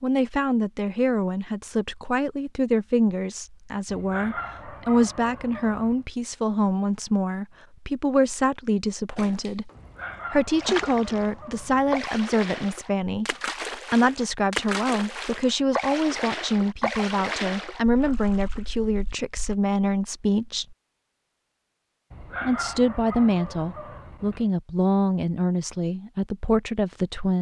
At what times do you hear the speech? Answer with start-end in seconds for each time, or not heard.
0.0-9.7, 10.3-20.8, 22.4-27.3.